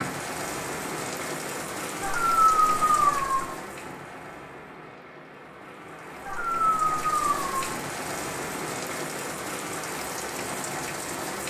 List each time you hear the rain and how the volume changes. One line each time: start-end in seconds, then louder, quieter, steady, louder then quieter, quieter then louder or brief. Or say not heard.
0.0-11.4 quieter then louder.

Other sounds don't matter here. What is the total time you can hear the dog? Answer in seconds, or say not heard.
3 s.